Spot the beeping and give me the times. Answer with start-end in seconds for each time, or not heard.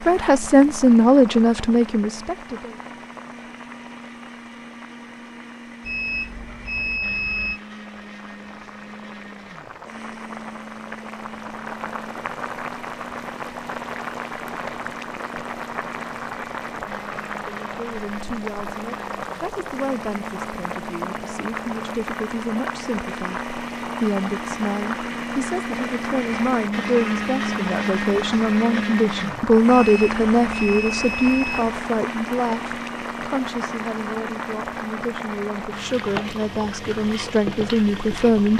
5.8-7.6, 29.7-31.8.